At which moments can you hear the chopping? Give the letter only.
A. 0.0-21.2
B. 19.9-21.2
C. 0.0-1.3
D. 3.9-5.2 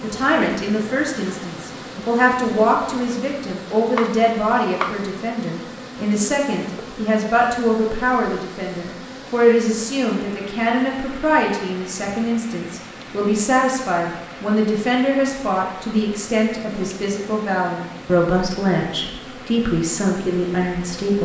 D.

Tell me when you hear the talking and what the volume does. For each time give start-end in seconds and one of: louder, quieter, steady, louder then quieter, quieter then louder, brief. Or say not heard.
0.0-21.2 steady.